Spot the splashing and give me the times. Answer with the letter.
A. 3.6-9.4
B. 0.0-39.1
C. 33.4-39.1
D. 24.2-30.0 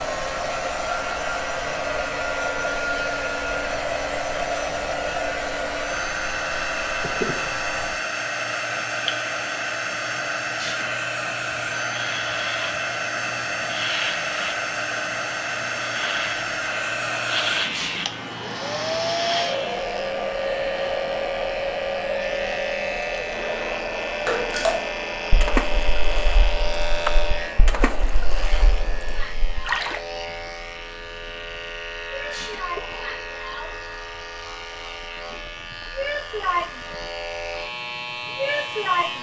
D.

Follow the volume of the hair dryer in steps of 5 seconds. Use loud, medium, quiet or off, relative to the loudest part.
loud, loud, loud, loud, loud, medium, medium, loud.